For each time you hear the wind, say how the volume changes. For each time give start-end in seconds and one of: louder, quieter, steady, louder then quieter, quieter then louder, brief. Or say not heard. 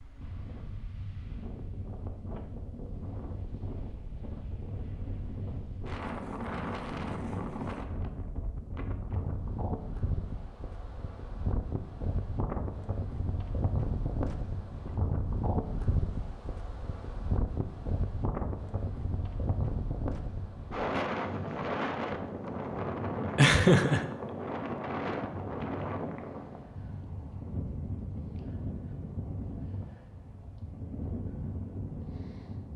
0.0-32.7 louder then quieter.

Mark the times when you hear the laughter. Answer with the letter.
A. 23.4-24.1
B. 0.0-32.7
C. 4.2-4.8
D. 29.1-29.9
A.